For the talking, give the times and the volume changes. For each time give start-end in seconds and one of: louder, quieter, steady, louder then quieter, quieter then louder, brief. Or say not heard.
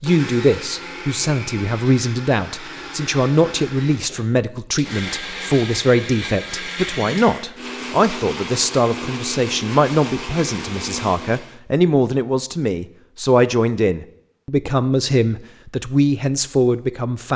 0.0-17.3 steady.